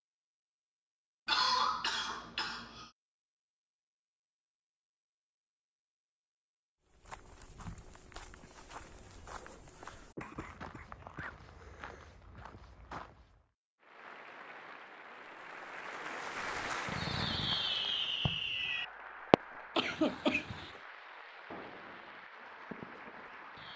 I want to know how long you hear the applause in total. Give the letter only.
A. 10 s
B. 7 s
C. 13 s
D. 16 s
A.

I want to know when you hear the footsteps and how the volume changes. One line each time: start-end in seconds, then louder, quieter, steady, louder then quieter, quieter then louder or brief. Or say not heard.
6.9-13.4 steady.